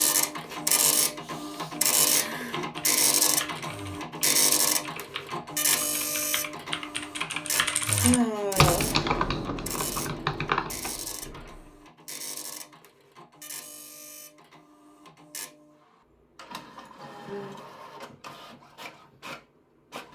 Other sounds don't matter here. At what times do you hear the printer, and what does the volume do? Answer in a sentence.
The printer can be heard from 0.0 to 20.1 s, getting quieter.